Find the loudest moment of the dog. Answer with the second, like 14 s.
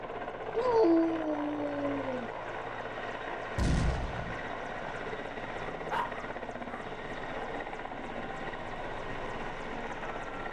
1 s.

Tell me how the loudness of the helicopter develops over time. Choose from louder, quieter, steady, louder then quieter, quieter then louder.
steady.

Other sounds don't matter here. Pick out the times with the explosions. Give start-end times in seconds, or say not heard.
3.5-4.4.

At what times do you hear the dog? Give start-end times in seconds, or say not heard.
0.6-2.3, 5.7-6.9.